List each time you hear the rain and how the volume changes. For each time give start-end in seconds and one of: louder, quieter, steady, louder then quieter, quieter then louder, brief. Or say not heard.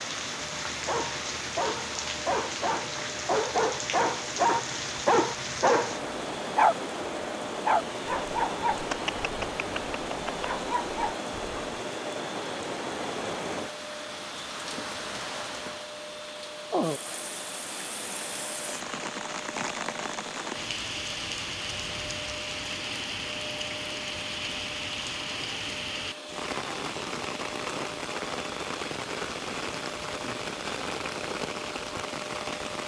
0.0-32.8 steady.